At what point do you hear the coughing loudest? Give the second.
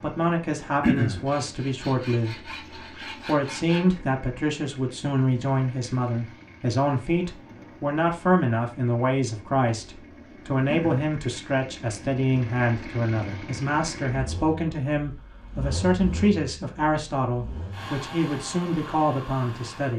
1 s.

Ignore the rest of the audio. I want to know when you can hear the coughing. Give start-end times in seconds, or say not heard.
0.8-1.2, 10.7-11.1.